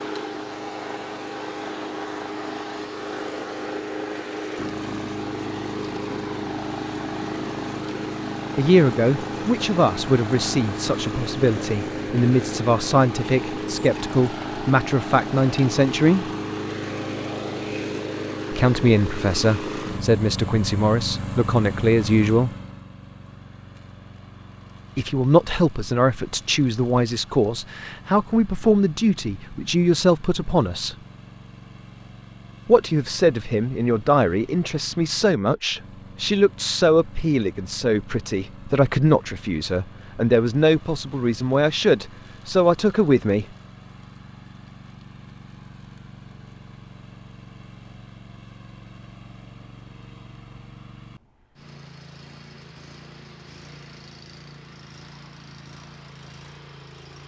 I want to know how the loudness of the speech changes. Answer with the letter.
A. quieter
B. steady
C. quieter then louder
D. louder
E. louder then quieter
B.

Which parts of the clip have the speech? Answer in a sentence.
The speech can be heard from 8.6 to 16.2 s, from 18.5 to 22.5 s, from 24.9 to 30.9 s and from 32.6 to 43.5 s.